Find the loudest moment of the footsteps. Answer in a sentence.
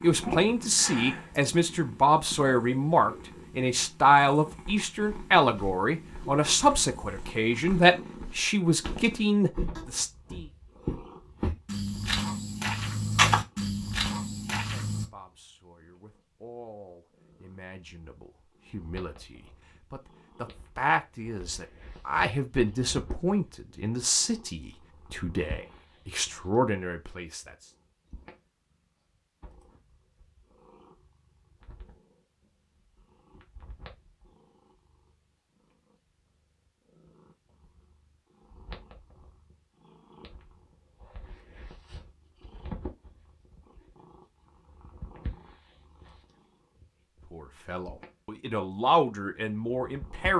The loudest moment of the footsteps is at 13 seconds.